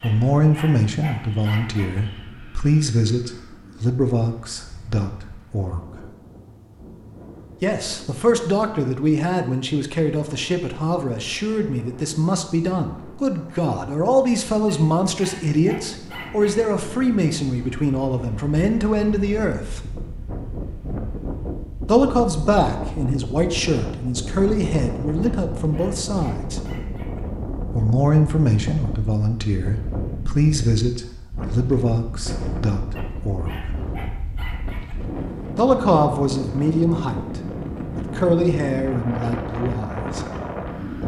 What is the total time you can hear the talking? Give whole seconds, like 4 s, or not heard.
33 s.